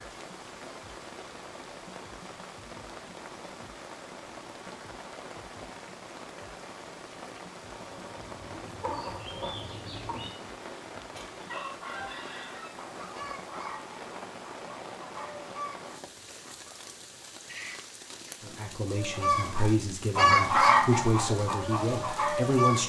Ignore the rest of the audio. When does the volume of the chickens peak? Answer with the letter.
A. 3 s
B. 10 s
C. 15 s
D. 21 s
D.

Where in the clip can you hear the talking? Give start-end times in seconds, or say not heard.
18.4-22.8.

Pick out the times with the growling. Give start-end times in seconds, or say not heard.
17.4-18.6.